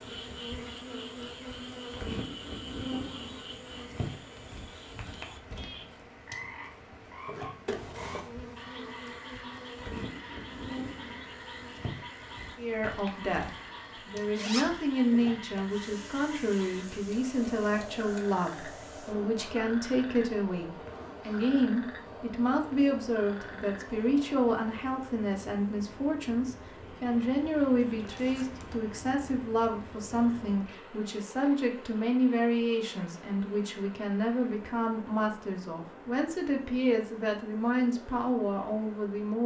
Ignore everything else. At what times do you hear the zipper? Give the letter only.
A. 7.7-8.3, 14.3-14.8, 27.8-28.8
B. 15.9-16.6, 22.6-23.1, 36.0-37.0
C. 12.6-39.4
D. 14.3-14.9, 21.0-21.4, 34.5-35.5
A.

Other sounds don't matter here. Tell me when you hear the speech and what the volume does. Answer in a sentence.
You can hear the speech from 12.6 to 39.4 s, at a steady volume.